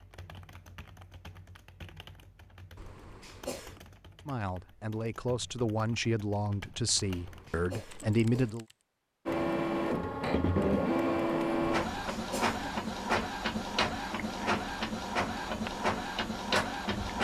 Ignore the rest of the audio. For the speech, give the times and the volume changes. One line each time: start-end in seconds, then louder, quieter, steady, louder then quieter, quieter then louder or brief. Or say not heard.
4.2-8.7 steady.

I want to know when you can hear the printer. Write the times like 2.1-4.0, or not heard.
9.2-17.1.